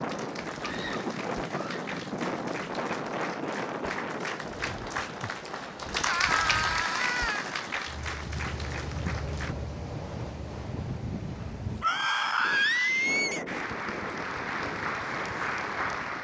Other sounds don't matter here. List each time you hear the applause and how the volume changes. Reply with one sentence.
You can hear the applause from 0.0 to 9.6 s, getting louder then quieter; and briefly from 13.4 to 16.2 s.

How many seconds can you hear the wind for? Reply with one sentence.
The wind can be heard for 16 seconds in total.